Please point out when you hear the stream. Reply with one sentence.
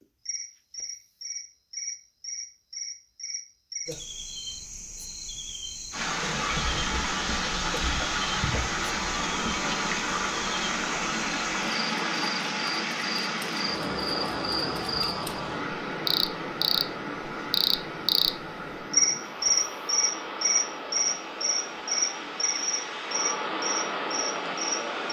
You can hear the stream from 5.9 to 25.0 s.